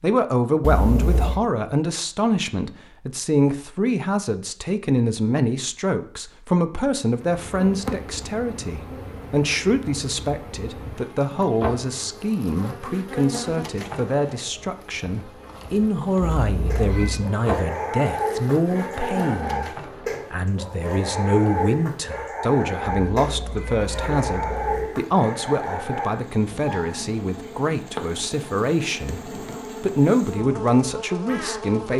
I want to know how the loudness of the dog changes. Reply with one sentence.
The loudness of the dog stays about the same.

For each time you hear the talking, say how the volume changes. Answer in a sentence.
The talking can be heard from 0.0 to 31.9 s, at a steady volume.